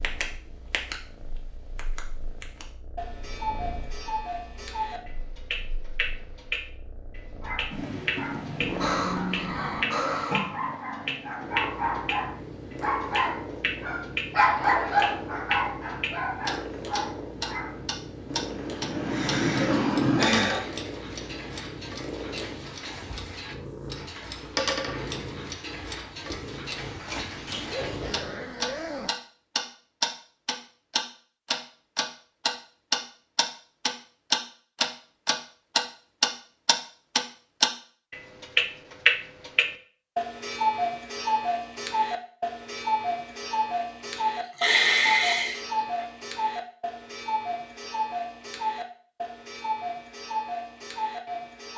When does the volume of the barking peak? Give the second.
15 s.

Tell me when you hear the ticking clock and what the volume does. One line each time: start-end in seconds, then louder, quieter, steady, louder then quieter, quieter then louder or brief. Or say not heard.
0.0-0.9 brief
1.8-51.7 louder then quieter.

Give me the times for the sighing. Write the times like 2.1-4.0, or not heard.
8.8-10.5, 18.3-20.6, 44.1-46.0.